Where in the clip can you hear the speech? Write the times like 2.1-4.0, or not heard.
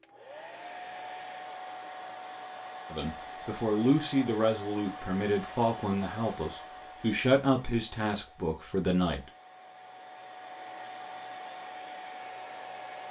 2.9-9.3.